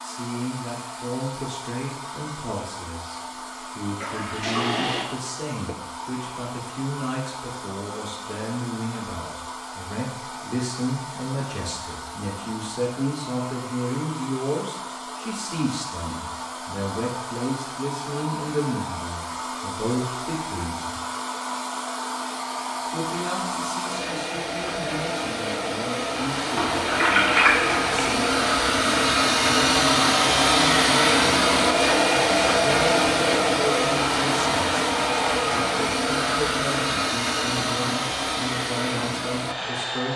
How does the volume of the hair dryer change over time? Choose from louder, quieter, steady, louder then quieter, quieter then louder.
louder.